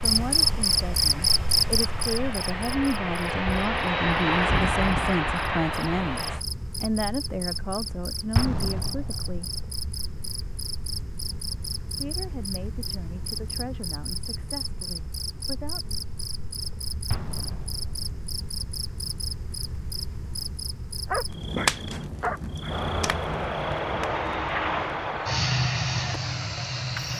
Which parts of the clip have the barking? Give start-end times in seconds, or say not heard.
21.1-22.8.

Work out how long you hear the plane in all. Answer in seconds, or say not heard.
11 s.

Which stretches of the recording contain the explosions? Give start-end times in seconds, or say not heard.
8.3-9.7, 17.1-18.2.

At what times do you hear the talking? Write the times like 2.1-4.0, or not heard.
0.0-9.5, 11.9-16.0.